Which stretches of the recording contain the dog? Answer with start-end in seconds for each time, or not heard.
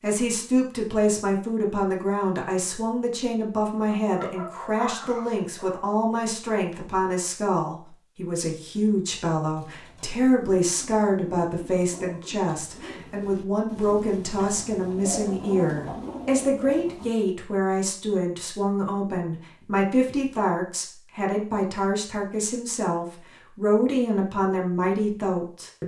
3.9-5.8.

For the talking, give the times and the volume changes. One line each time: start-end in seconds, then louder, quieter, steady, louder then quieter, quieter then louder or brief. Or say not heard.
0.0-25.8 steady.